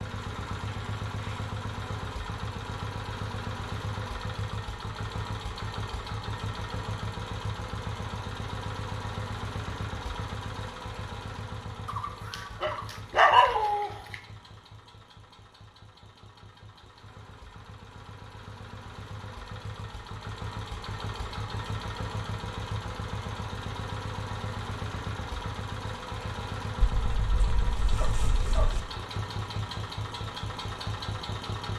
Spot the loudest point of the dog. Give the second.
13 s.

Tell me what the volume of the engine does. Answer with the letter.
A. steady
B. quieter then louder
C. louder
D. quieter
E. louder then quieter
B.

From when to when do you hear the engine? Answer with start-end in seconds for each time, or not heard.
0.0-31.7.